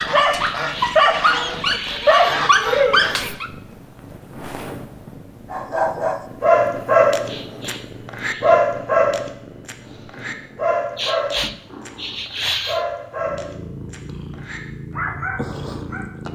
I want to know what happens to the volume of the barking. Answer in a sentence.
The loudness of the barking goes down.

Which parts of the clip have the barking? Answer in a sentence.
You can hear the barking from 0.0 to 3.5 s and from 5.5 to 16.1 s.